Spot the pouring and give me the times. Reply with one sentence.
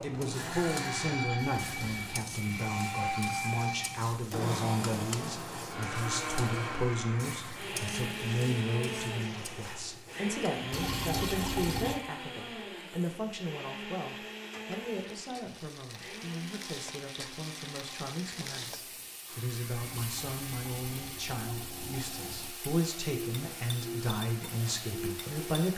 You can hear the pouring from 1.4 to 2.2 s, from 10.7 to 12.0 s and from 19.8 to 22.5 s.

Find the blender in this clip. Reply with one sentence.
The blender can be heard from 0.0 to 25.7 s.